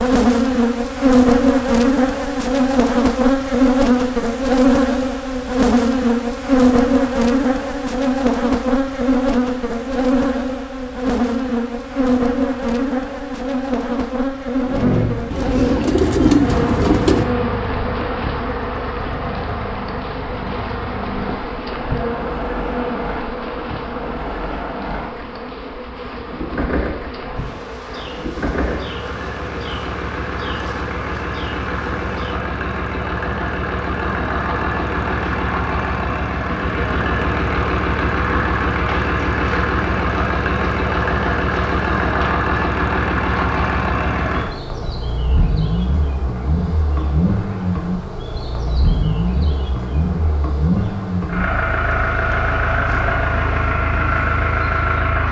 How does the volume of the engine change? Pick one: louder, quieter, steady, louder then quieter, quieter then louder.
louder.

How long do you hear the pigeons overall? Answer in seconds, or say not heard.
2 s.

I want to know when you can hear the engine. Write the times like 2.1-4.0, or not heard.
14.7-55.2.